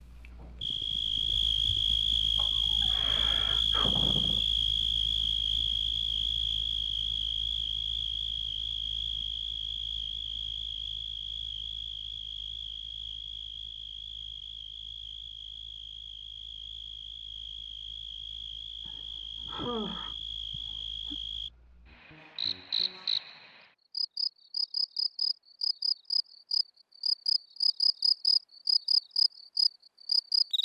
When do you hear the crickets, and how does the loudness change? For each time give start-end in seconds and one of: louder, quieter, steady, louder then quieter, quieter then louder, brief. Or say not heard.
0.1-30.5 quieter then louder.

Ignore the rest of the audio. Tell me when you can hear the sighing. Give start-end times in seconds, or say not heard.
2.4-4.5, 18.9-21.1.